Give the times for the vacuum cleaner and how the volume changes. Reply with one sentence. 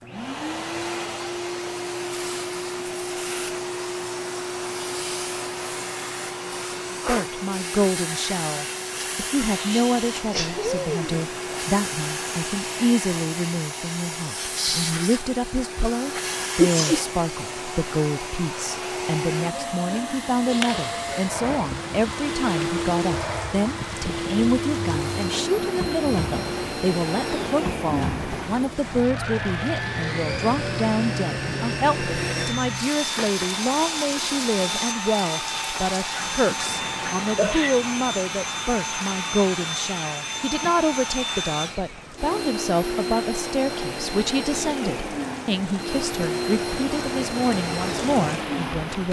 You can hear the vacuum cleaner from 0.0 to 49.0 s, at a steady volume.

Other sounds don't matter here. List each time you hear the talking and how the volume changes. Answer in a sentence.
You can hear the talking from 7.0 to 49.0 s, at a steady volume.